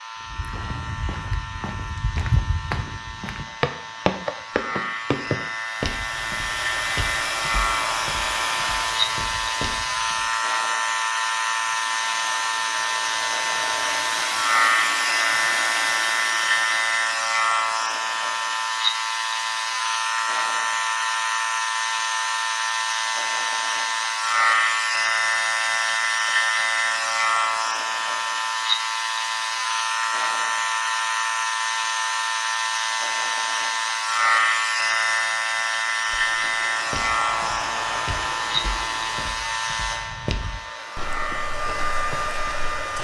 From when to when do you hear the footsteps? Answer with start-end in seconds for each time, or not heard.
0.3-10.2, 36.1-42.9.